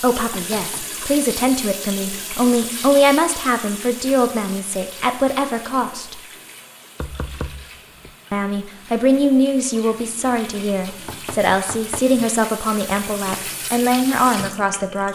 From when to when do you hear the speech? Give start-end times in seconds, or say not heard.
0.0-6.2, 8.3-15.1.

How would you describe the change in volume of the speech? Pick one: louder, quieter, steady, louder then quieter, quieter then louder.
steady.